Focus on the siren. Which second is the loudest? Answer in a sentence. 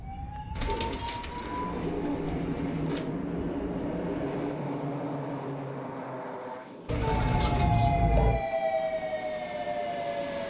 The volume of the siren peaks at 8 seconds.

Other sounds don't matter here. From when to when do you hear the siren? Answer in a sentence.
You can hear the siren from 0.0 to 1.6 s and from 7.0 to 10.4 s.